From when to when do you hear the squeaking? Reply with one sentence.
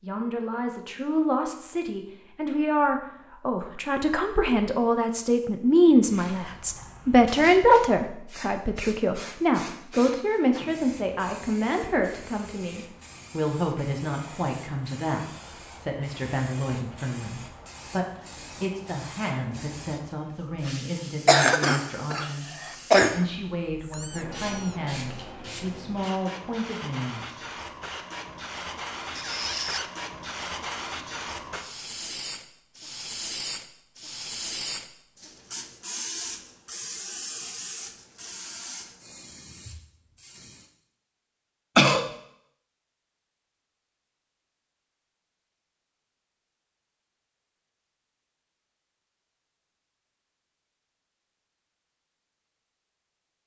The squeaking can be heard from 23.8 to 24.8 s and from 29.1 to 29.9 s.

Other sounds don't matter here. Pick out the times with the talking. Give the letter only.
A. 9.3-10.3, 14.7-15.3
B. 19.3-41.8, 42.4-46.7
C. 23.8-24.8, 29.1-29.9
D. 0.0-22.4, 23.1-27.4
D.